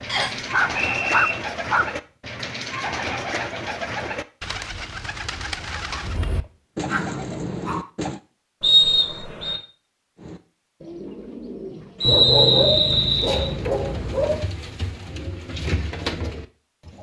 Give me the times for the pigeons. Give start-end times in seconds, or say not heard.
0.0-8.2, 10.2-16.9.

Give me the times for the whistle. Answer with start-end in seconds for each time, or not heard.
0.1-1.4, 8.6-9.6, 12.0-13.5.